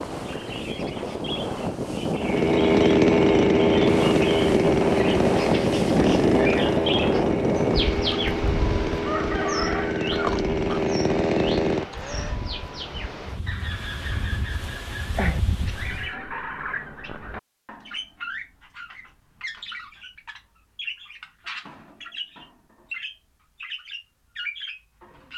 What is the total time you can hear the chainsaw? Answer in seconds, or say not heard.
10 s.